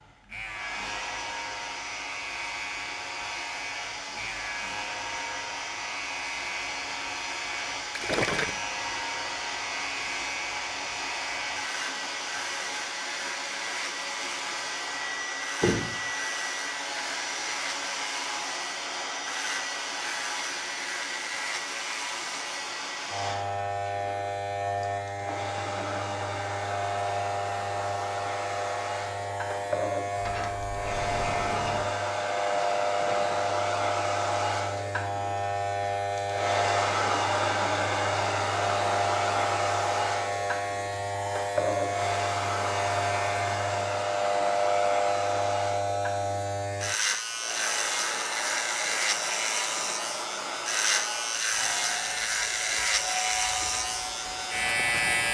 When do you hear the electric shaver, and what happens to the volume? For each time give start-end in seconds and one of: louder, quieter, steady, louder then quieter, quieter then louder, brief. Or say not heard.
0.0-55.2 louder.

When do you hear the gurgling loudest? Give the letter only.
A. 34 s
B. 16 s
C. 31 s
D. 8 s
D.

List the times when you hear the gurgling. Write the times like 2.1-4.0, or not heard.
8.0-8.6, 32.9-33.5.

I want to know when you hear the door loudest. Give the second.
16 s.